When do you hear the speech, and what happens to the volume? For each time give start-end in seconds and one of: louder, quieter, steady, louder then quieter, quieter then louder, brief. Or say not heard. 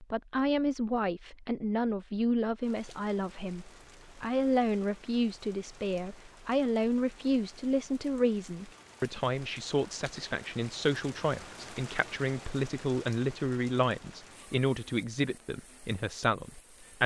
0.0-17.0 steady.